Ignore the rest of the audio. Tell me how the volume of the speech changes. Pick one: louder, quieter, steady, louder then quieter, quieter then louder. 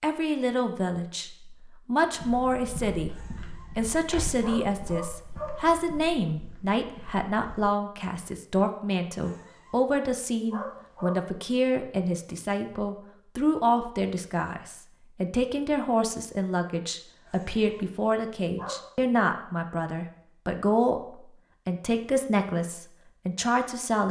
steady.